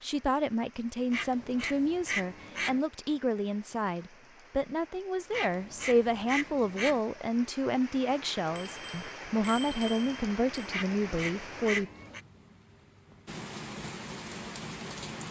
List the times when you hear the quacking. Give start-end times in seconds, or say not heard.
1.1-2.8, 5.3-7.0, 10.7-12.2.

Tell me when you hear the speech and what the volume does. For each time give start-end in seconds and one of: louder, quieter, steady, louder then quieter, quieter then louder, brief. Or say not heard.
0.0-11.9 steady.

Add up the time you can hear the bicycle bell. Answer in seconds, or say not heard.
2 s.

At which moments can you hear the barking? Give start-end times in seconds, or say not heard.
not heard.